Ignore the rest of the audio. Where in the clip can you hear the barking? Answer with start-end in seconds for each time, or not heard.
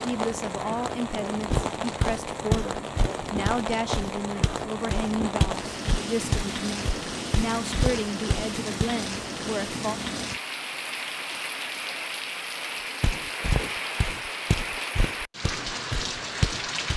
not heard.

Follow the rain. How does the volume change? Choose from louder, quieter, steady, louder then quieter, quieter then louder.
steady.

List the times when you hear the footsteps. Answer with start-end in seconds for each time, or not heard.
1.4-8.8, 13.0-16.9.